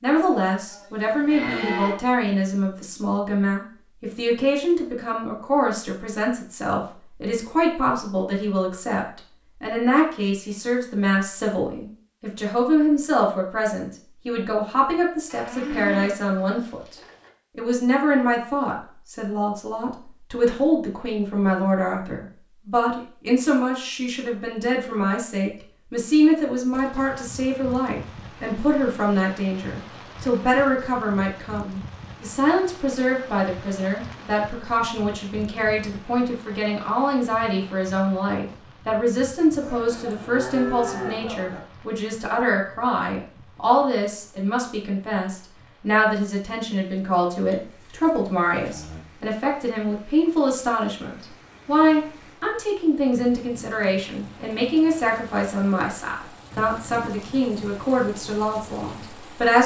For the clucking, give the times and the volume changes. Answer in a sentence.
You can't hear the clucking here.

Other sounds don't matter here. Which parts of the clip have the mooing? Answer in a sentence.
You can hear the mooing from 0.1 to 2.0 s, from 15.2 to 17.3 s, from 39.6 to 41.6 s and from 47.5 to 49.0 s.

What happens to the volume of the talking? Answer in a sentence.
The loudness of the talking stays about the same.